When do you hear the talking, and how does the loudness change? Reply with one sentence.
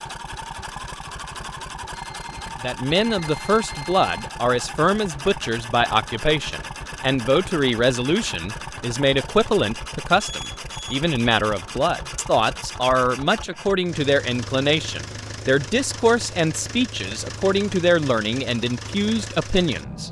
You can hear the talking from 2.6 to 20.0 s, at a steady volume.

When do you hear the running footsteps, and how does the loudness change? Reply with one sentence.
You can't hear the running footsteps here.